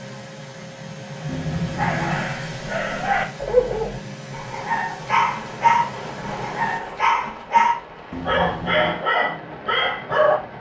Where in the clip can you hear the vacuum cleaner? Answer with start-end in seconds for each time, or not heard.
0.0-6.8.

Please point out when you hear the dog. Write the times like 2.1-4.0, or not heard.
1.8-10.4.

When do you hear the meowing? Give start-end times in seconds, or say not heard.
1.2-2.3, 8.1-9.1.